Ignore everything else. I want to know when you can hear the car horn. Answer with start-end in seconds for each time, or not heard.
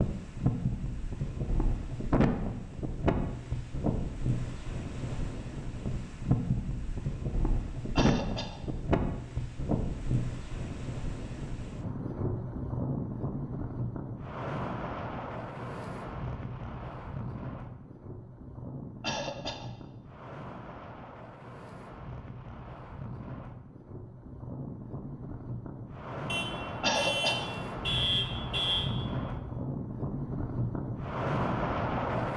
26.2-28.9.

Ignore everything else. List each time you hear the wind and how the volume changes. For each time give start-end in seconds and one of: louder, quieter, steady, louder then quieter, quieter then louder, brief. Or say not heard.
0.0-32.3 quieter then louder.